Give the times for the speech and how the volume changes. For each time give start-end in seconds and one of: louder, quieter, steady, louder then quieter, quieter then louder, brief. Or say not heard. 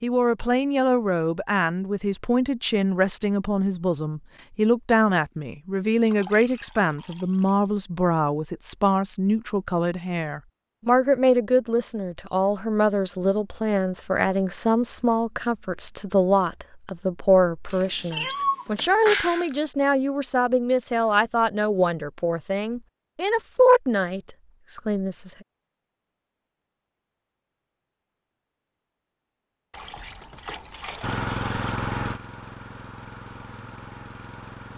0.0-25.4 steady.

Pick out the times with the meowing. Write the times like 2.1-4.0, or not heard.
17.7-19.6.